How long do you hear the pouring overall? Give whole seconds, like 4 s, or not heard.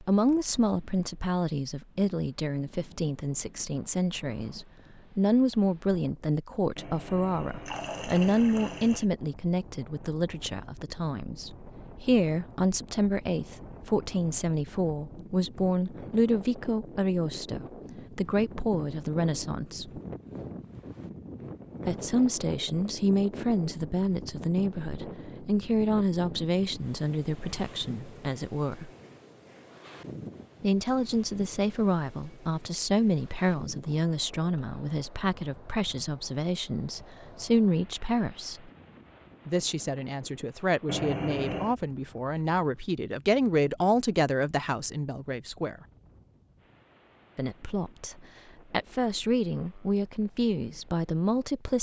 3 s.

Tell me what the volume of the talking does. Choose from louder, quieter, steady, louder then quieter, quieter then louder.
steady.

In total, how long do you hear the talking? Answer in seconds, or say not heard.
46 s.